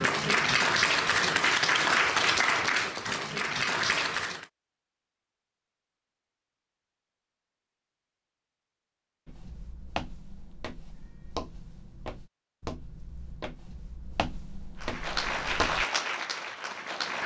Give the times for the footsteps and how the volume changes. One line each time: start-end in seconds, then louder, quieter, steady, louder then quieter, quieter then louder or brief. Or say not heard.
9.2-15.8 steady.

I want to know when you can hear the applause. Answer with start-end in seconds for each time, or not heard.
0.0-4.5, 14.8-17.2.